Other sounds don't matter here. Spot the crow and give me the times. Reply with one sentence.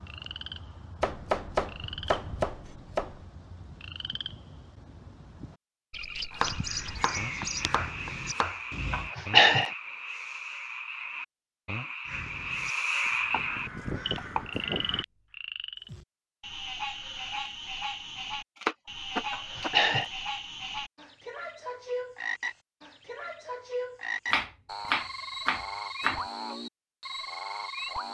The crow can be heard from 6.4 to 9.1 s and from 12.1 to 15.1 s.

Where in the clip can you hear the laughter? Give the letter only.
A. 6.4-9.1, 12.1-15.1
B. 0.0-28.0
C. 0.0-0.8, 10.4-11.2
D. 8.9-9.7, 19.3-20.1
D.